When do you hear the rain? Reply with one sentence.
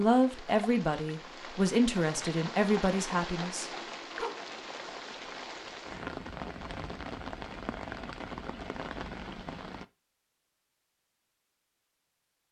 You can hear the rain from 0.0 to 9.8 s.